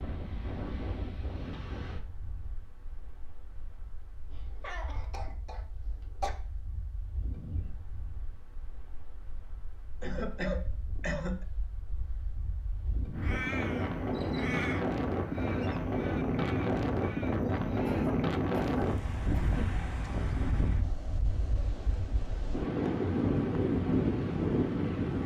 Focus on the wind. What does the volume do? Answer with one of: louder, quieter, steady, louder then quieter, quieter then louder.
quieter then louder.